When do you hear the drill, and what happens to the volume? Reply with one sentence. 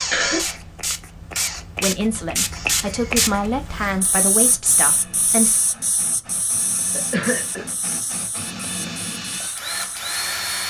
You can hear the drill from 0.0 to 10.6 s, getting quieter then louder.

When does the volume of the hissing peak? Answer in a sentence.
The loudest moment of the hissing is at 3 seconds.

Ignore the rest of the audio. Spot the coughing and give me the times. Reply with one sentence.
You can hear the coughing from 0.1 to 0.7 s and from 6.9 to 7.7 s.